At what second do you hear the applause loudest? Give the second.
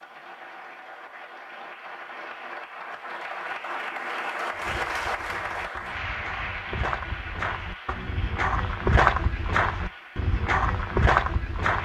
5 s.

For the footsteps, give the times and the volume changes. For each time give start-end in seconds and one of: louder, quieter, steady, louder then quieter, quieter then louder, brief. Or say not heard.
4.5-11.7 louder.